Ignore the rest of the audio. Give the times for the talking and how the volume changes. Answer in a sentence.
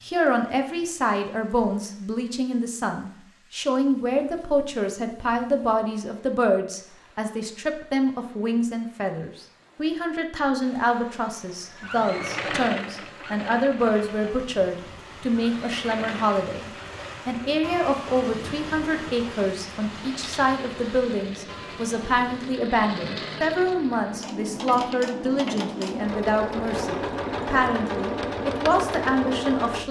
The talking can be heard from 0.0 to 29.8 s, at a steady volume.